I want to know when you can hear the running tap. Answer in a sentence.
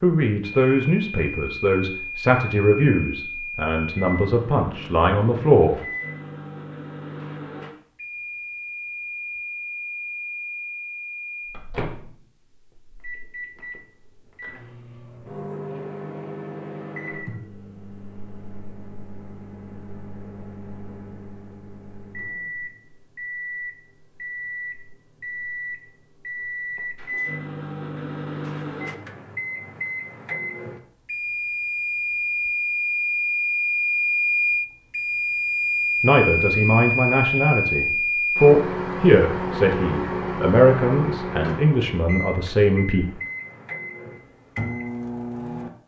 You can't hear the running tap here.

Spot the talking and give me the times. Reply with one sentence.
The talking can be heard from 0.0 to 5.8 s and from 36.0 to 43.1 s.